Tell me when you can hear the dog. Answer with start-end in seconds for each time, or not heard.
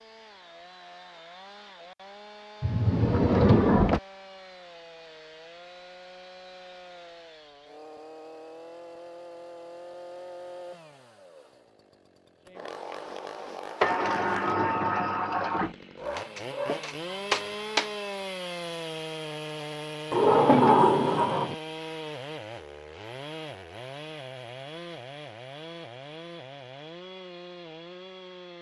15.9-17.9.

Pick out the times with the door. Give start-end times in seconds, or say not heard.
2.6-4.0, 13.8-15.8, 20.1-21.6.